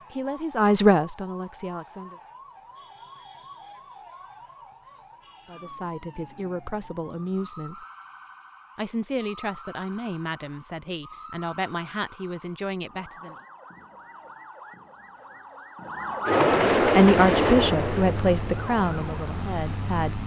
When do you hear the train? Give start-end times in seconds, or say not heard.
16.2-19.9.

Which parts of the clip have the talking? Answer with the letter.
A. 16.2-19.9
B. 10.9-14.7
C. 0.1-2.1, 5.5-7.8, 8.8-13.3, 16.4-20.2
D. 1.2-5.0
C.